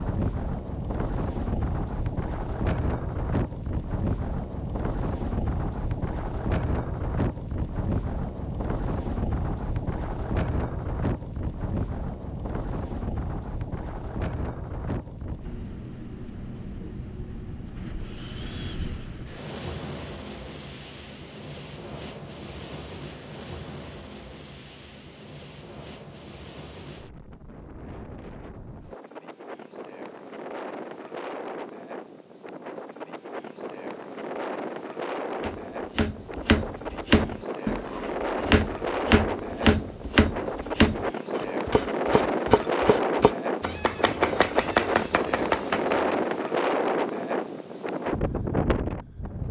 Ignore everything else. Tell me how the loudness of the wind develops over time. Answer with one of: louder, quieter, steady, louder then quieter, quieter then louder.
quieter then louder.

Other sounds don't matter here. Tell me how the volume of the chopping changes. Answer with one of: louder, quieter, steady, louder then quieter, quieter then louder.
steady.